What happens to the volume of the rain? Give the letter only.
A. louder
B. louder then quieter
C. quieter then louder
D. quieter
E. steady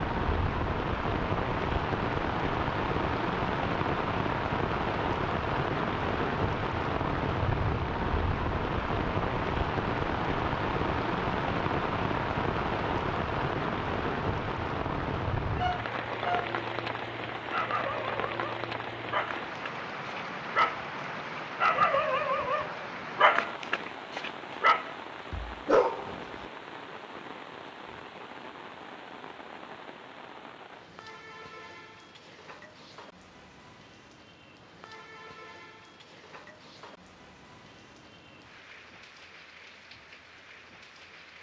D.